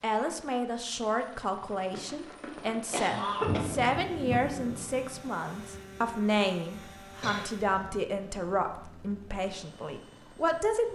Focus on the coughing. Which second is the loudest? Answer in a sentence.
The loudest moment of the coughing is at 3 seconds.